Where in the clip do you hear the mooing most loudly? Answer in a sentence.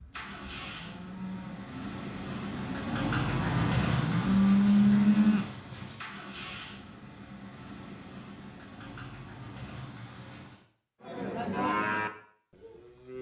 The loudest moment of the mooing is at 5 seconds.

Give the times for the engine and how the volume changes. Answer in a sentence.
You can hear the engine from 0.1 to 10.7 s, getting louder then quieter.